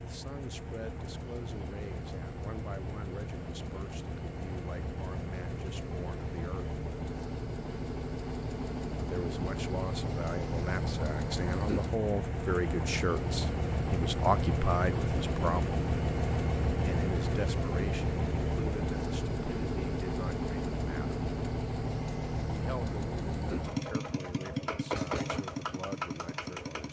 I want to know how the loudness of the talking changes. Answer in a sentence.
The loudness of the talking goes up, then down.